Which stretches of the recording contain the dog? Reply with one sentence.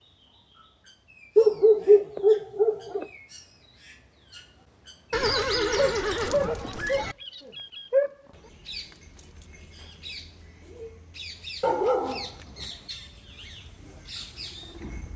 You can hear the dog from 1.4 to 3.0 s, from 5.8 to 8.2 s and from 11.6 to 12.7 s.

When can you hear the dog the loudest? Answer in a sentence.
The loudest moment of the dog is at 2 seconds.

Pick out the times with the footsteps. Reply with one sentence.
The footsteps can't be heard in this clip.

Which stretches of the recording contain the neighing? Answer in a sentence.
You can hear the neighing from 5.1 to 7.2 s.